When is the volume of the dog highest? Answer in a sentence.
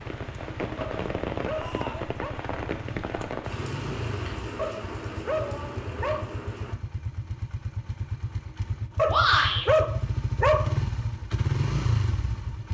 The loudest moment of the dog is at 10 seconds.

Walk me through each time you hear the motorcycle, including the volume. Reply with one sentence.
You can hear the motorcycle from 0.0 to 12.6 s, getting louder.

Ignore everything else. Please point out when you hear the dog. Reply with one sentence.
The dog can be heard from 0.8 to 2.4 s, from 4.5 to 6.3 s and from 8.9 to 10.8 s.